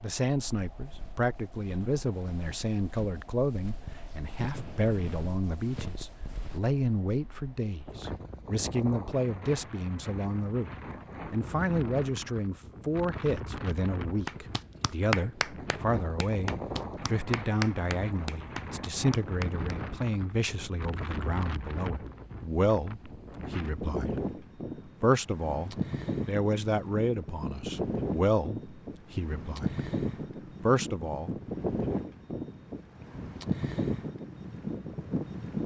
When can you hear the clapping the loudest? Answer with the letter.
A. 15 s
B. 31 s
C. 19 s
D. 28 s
A.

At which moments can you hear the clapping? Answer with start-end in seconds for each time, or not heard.
14.2-19.8.